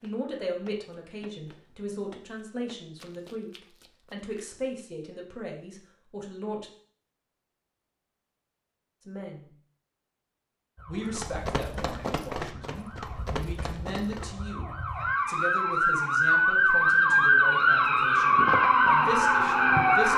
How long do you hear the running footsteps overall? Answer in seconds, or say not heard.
8 s.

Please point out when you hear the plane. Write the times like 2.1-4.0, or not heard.
not heard.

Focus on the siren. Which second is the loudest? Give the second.
17 s.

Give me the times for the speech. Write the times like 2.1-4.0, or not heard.
0.0-3.5, 4.1-6.7, 9.1-9.5, 10.8-20.1.